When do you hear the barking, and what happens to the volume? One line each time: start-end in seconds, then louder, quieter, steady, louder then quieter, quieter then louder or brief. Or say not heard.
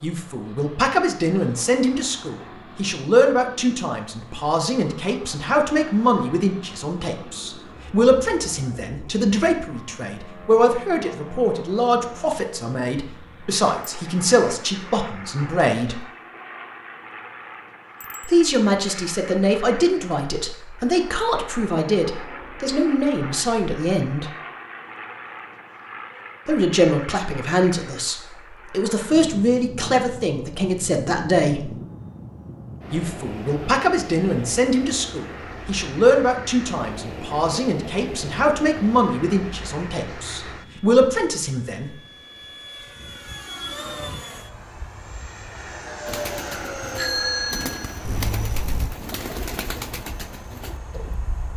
not heard.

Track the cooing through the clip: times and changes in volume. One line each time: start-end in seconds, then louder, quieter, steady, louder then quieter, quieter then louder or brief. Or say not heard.
46.0-51.2 louder then quieter.